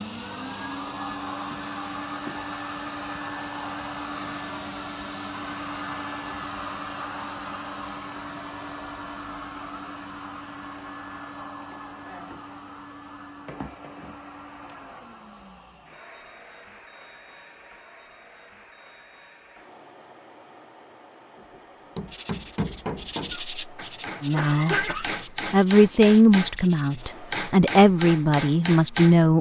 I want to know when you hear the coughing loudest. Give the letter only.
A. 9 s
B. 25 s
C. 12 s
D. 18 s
B.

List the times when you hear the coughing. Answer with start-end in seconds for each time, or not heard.
23.3-25.1.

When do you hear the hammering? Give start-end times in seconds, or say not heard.
21.4-29.1.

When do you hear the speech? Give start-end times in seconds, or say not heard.
24.2-24.9, 25.5-29.3.